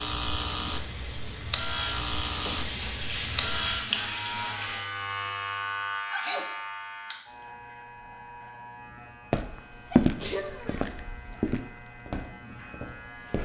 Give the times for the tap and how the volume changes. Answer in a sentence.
You can hear the tap from 0.1 to 4.8 s, getting louder.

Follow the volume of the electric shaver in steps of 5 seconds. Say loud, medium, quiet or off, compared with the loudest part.
loud, medium, quiet.